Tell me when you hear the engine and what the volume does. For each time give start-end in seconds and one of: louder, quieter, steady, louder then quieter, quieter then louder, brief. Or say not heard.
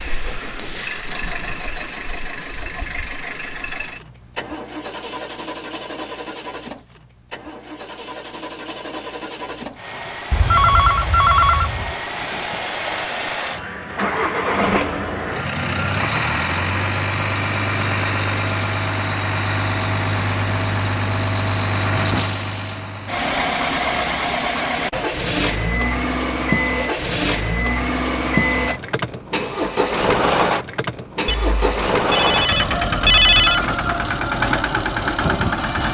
0.0-35.8 louder.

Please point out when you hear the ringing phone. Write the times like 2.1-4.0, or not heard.
10.3-11.9, 31.2-33.6.